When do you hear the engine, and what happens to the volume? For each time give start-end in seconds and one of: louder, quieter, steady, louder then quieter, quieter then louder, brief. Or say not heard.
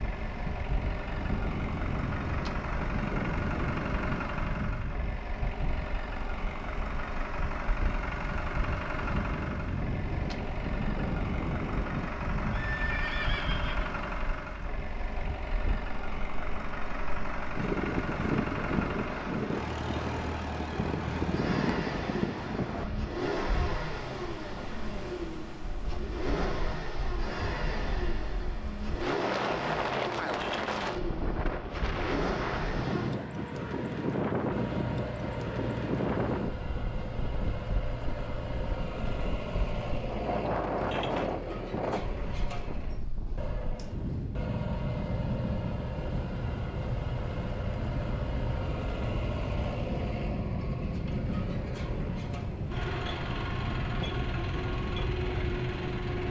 0.0-56.2 steady.